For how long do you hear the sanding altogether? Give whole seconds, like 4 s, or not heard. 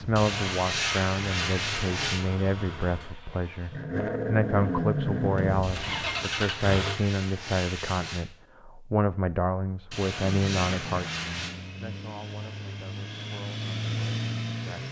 6 s.